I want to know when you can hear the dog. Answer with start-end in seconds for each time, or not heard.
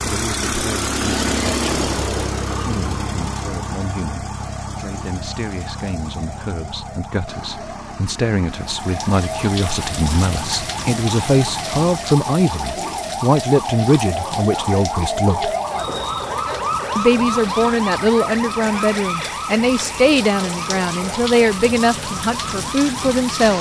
not heard.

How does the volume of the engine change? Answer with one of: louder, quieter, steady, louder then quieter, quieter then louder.
quieter.